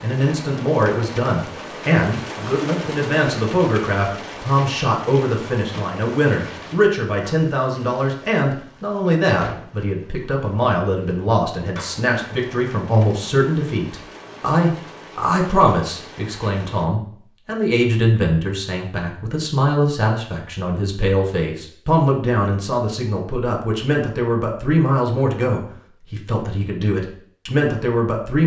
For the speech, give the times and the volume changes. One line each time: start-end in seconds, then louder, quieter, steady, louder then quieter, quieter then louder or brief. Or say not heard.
0.0-28.4 steady.